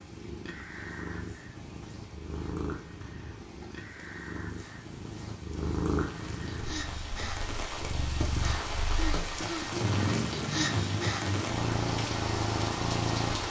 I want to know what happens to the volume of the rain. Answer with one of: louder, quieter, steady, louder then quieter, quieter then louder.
louder.